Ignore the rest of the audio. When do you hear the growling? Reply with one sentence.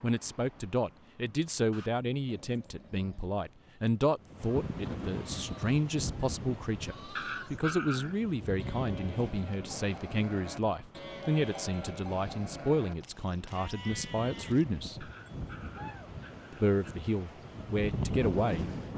You can hear the growling from 1.7 to 3.4 s, from 7.2 to 8.2 s and from 15.0 to 17.0 s.